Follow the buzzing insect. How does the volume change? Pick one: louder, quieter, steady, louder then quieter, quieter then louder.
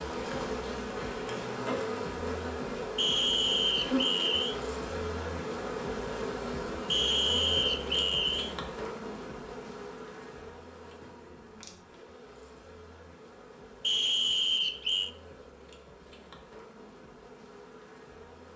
quieter.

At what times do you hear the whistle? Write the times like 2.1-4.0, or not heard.
3.0-4.5, 6.9-8.6, 13.8-15.1.